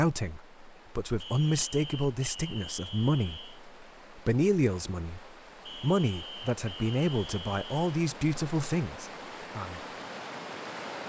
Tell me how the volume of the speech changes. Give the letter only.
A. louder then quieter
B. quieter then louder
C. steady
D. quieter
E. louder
C.